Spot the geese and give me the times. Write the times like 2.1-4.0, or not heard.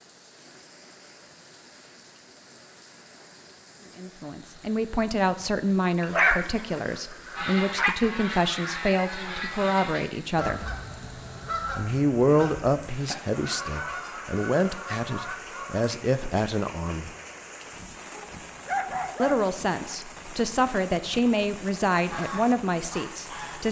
7.3-15.9, 22.1-23.6.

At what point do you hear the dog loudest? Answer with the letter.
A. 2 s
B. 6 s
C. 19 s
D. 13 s
B.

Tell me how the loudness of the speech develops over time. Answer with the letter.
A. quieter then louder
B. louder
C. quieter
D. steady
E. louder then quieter
D.